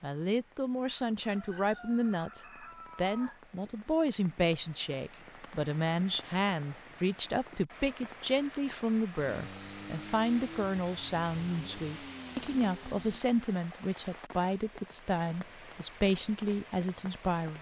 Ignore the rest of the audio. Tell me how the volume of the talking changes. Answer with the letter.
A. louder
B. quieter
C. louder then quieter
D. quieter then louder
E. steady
E.